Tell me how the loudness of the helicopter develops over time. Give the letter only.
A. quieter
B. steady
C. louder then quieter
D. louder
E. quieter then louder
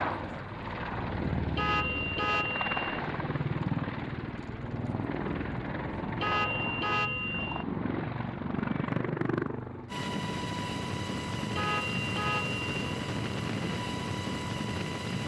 B.